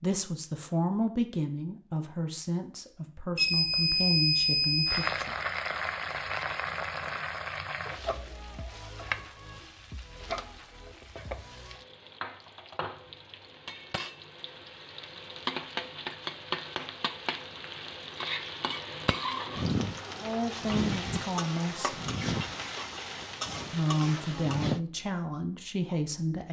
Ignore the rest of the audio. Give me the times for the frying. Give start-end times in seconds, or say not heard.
4.8-24.8.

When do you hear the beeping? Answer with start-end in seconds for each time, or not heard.
3.4-5.2.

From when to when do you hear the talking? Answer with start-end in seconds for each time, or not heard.
0.0-5.3, 20.2-22.0, 23.7-26.4.